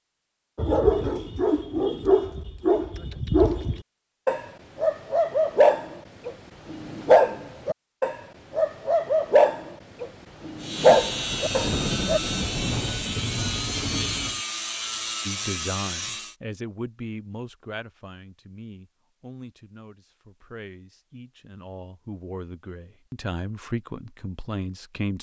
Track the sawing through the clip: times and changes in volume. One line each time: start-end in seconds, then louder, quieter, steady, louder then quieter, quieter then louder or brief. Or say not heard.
10.6-16.4 steady.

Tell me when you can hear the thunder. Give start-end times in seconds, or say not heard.
10.8-14.4.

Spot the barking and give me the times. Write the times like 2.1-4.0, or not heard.
0.6-12.2.